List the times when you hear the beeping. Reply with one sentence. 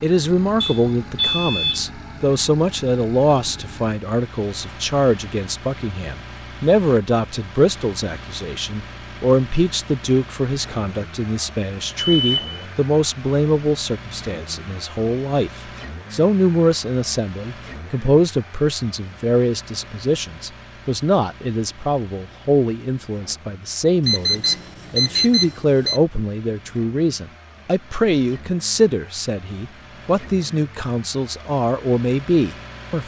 The beeping can be heard from 0.6 to 1.8 s, from 12.2 to 12.7 s and from 24.1 to 26.0 s.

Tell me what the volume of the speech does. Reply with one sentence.
The volume of the speech stays about the same.